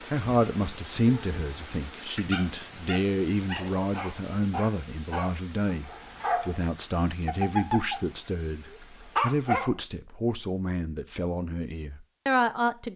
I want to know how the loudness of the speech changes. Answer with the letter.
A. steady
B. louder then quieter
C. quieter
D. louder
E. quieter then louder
A.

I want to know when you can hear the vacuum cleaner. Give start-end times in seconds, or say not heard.
not heard.